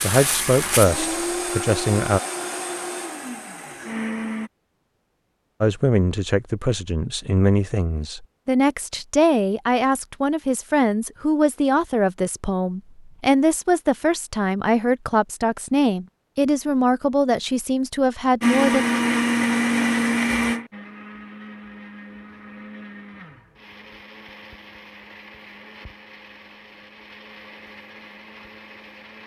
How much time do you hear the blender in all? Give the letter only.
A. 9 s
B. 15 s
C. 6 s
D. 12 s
B.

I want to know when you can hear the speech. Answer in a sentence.
You can hear the speech from 0.0 to 2.2 s and from 5.6 to 18.9 s.